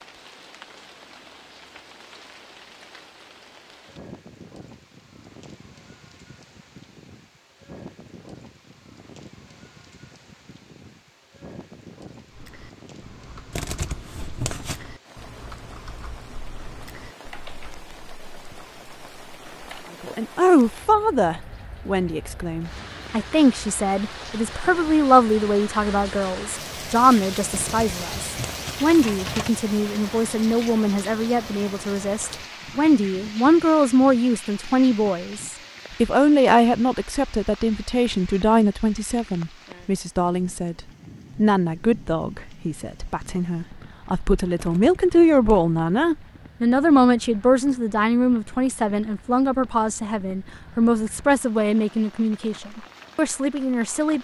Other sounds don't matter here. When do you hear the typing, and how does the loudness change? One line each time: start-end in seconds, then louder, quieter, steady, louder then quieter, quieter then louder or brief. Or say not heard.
12.3-19.9 quieter.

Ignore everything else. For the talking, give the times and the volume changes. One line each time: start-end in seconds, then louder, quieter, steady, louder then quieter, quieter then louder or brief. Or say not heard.
20.0-54.1 steady.